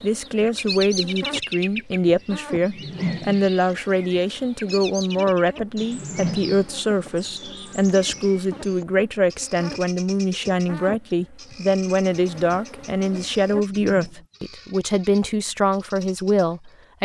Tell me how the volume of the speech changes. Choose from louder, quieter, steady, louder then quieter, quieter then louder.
steady.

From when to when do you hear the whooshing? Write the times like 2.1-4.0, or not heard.
2.6-3.5, 5.8-6.7, 13.8-14.2.